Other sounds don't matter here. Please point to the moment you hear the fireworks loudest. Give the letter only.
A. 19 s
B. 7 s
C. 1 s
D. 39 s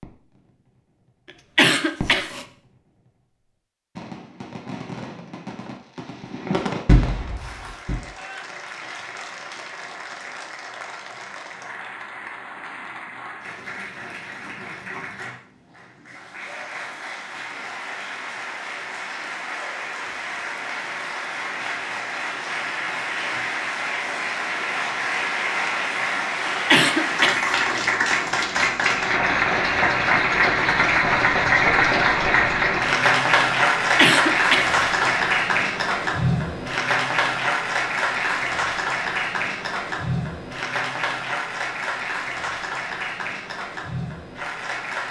B.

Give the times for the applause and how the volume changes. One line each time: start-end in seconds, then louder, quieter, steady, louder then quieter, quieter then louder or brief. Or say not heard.
7.3-45.0 louder then quieter.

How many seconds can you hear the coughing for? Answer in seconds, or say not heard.
3 s.